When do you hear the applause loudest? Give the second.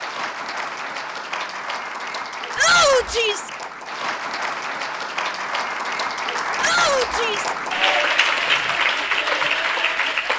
8 s.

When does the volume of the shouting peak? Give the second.
3 s.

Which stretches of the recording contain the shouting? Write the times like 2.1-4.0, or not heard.
2.5-3.5, 6.6-7.5.